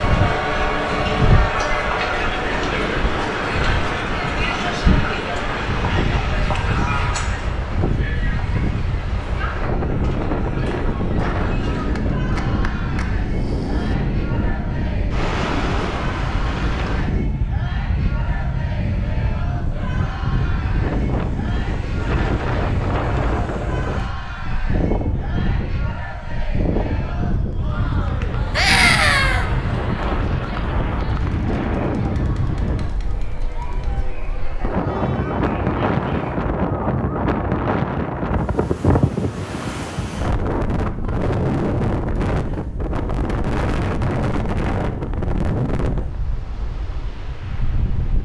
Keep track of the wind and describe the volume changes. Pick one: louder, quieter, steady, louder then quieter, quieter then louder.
steady.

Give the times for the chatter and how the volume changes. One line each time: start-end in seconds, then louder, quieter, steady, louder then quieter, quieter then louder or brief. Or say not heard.
0.0-36.4 quieter.